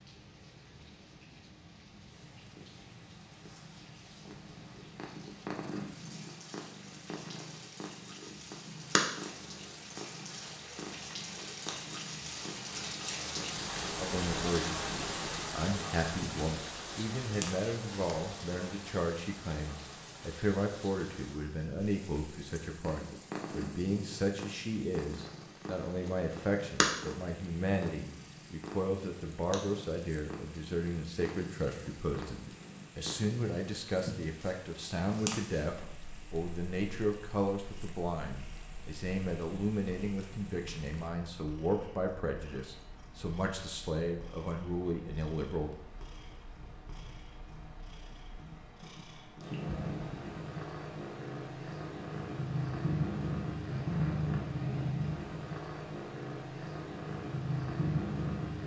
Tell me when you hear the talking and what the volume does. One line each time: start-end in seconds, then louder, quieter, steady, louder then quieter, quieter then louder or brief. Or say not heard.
13.9-45.8 steady.